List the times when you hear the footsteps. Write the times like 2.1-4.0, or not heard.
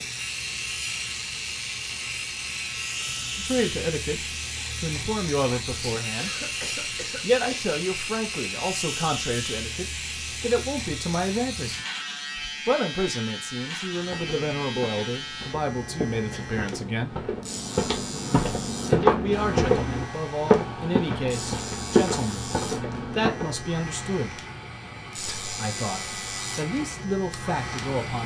14.1-23.6.